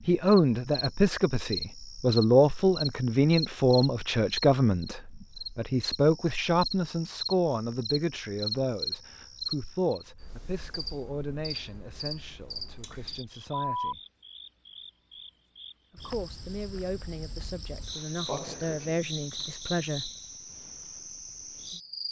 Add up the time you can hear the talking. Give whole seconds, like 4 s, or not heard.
18 s.